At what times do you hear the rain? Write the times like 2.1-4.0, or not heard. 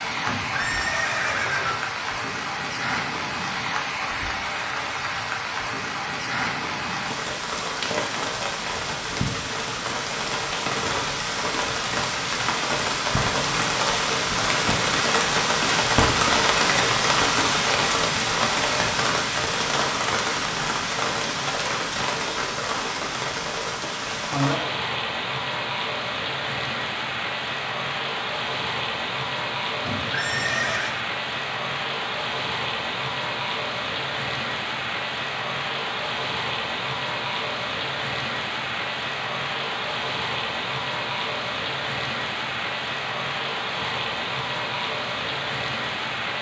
0.0-46.3.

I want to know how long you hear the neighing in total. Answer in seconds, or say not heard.
3 s.